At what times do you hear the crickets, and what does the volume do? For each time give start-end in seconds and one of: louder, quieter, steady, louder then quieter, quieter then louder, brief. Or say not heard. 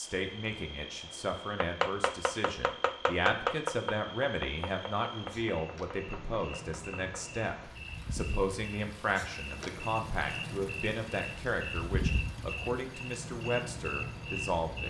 0.1-14.8 louder.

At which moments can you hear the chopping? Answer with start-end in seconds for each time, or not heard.
1.6-7.2.